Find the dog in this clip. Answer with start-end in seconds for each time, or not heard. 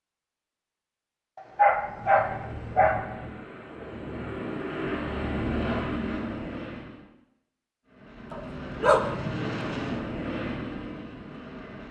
1.4-3.0, 8.3-9.1.